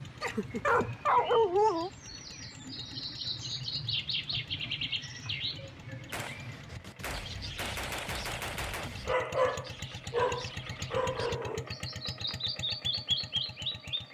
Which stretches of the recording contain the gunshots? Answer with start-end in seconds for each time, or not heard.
6.1-9.2.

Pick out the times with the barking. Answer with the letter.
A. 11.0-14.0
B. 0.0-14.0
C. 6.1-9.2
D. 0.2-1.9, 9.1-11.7
D.